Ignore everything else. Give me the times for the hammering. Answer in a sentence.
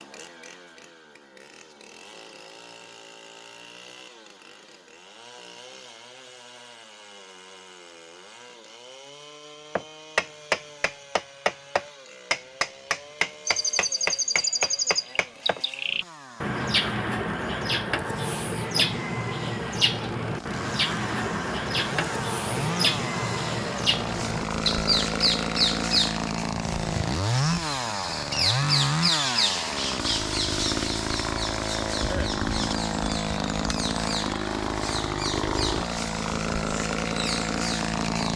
The hammering can be heard from 9.8 to 15.6 s.